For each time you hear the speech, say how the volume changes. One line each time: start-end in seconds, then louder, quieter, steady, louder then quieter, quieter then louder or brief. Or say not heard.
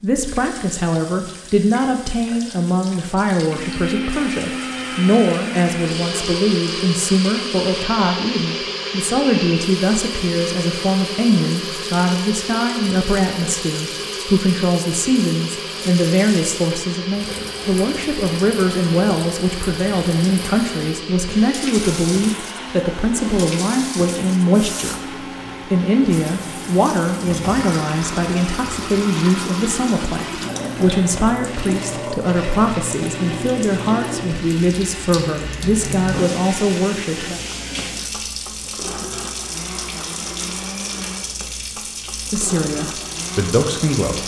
0.0-37.4 steady
42.3-44.2 brief.